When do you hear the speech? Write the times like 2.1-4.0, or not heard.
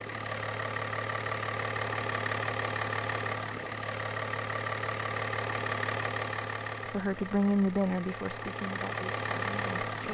6.8-10.1.